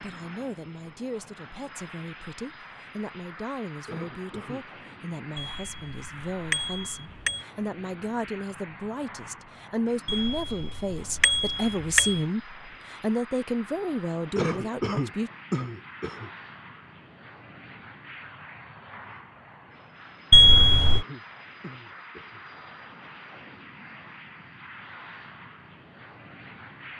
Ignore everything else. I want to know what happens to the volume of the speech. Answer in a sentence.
The volume of the speech goes up.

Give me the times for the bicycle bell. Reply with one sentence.
The bicycle bell can be heard from 5.4 to 7.5 s, from 10.1 to 12.2 s and from 20.3 to 21.1 s.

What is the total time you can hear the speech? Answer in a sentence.
You can hear the speech for 15 seconds altogether.